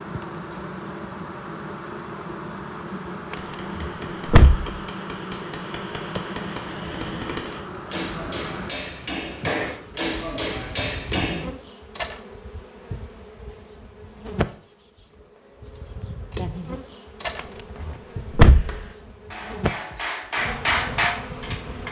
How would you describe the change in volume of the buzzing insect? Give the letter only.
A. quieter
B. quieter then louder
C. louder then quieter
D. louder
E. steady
E.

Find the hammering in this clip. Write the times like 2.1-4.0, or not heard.
3.4-11.4, 18.4-21.8.